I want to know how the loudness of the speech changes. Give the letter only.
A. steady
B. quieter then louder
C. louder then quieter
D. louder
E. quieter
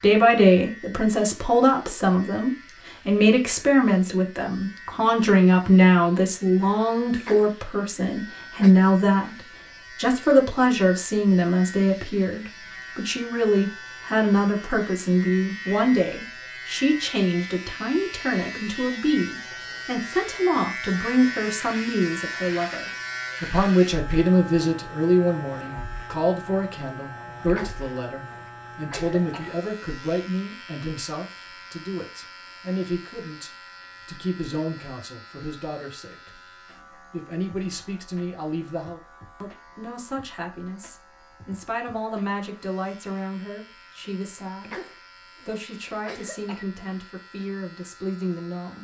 E.